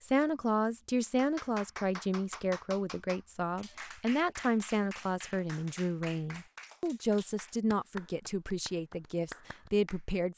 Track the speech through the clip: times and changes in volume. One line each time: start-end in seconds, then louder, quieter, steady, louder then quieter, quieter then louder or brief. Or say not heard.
0.0-10.3 steady.